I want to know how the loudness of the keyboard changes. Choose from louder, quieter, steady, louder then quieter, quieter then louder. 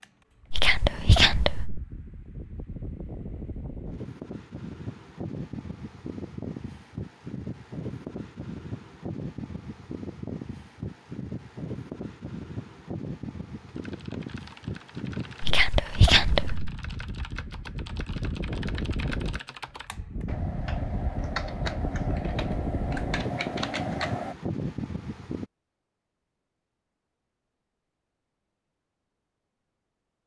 louder.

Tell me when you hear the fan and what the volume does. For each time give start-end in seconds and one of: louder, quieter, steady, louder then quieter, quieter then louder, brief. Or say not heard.
0.0-25.4 louder.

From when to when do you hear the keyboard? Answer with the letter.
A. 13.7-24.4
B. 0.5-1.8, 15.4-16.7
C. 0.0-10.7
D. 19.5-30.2
A.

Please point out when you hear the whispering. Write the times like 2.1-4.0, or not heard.
0.5-1.8, 15.4-16.7.